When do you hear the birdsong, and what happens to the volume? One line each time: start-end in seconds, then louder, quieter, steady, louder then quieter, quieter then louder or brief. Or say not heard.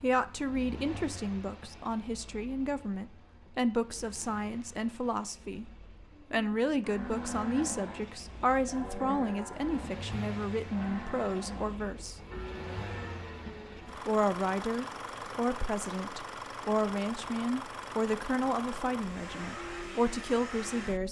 not heard.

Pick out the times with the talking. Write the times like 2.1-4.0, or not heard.
0.0-5.7, 6.3-12.2, 14.1-21.0.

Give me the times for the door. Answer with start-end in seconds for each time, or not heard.
not heard.